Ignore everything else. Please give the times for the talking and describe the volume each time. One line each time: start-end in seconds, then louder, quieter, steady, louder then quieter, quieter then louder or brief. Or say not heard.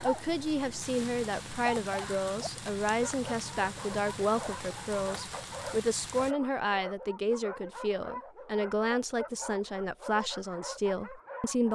0.0-11.7 steady.